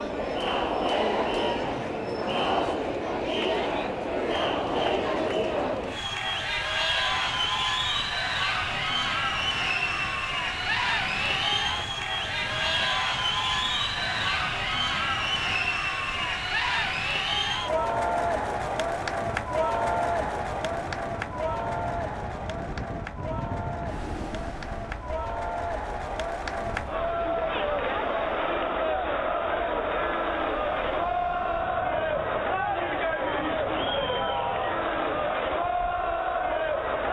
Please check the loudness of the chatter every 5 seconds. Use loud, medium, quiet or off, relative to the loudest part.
loud, loud, loud, loud, medium, loud, loud, loud.